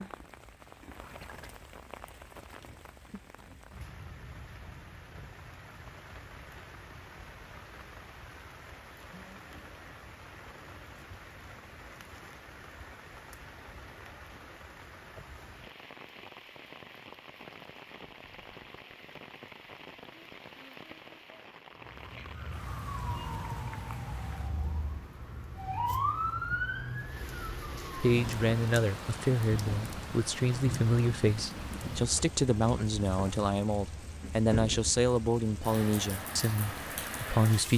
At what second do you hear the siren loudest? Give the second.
26 s.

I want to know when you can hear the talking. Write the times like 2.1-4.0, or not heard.
27.9-37.7.